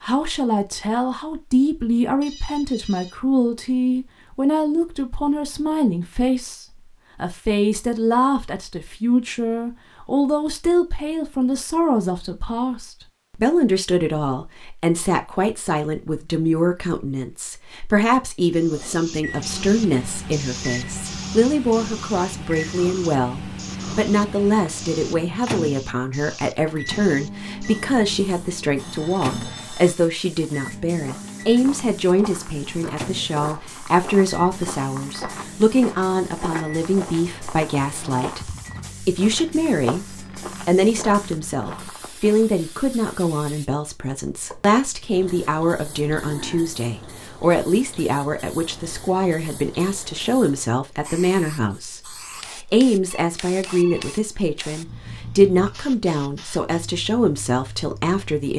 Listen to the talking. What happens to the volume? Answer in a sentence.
The volume of the talking stays about the same.